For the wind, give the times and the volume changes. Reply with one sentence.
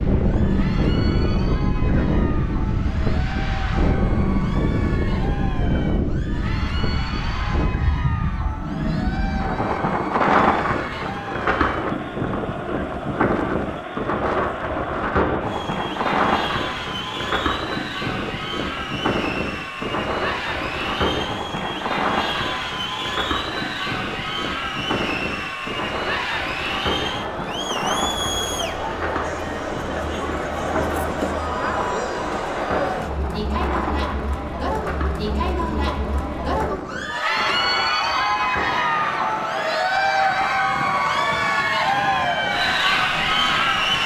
The wind can be heard from 0.0 to 44.0 s, getting quieter.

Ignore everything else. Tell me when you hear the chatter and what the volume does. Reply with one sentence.
You can hear the chatter from 0.1 to 44.0 s, getting louder.